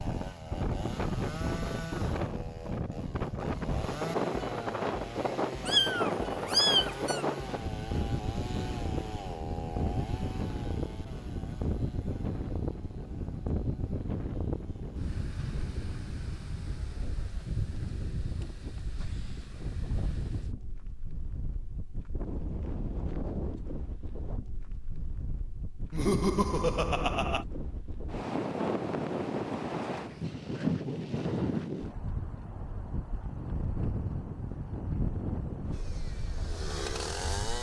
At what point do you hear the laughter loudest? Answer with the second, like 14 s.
26 s.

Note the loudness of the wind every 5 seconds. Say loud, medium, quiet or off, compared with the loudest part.
loud, loud, loud, medium, medium, loud, loud, medium.